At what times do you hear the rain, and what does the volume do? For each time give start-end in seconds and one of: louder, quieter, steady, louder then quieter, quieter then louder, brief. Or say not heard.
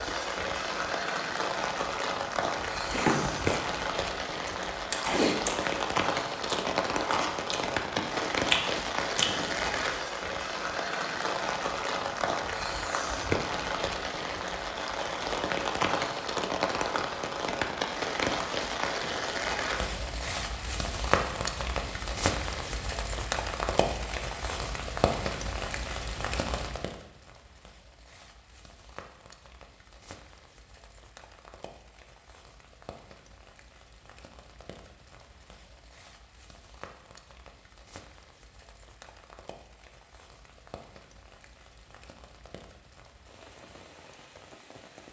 0.0-45.0 quieter.